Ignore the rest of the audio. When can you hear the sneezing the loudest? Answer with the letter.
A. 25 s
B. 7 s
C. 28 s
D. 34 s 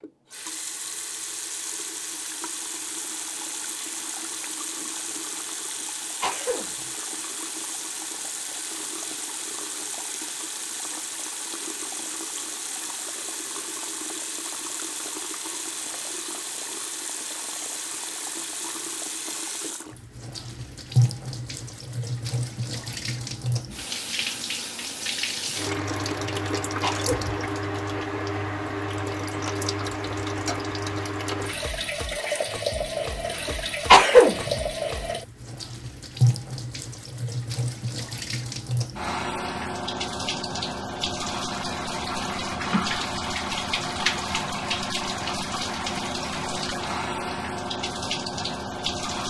D.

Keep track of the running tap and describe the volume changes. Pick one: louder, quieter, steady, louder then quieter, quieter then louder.
louder.